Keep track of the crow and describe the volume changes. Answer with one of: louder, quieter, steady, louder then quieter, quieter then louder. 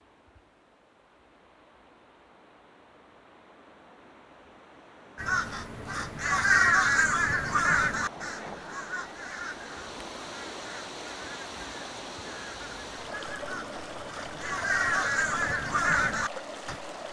quieter then louder.